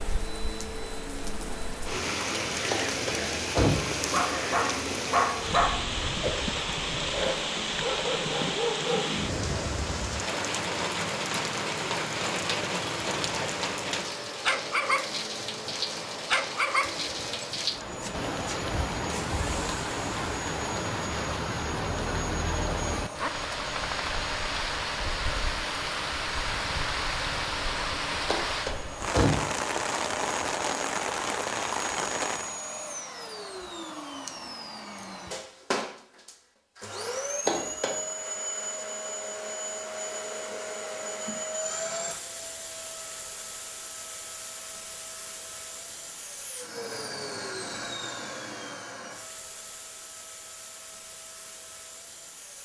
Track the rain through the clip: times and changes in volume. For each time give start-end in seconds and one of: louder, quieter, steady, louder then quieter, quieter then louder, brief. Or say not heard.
0.0-32.5 steady.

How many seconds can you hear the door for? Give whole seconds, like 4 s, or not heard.
3 s.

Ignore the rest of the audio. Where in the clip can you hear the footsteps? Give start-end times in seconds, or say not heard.
not heard.